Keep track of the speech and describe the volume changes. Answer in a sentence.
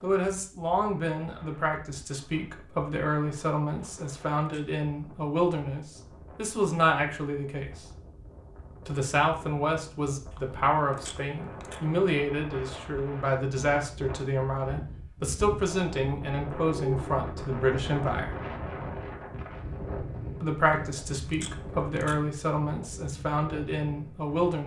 The loudness of the speech stays about the same.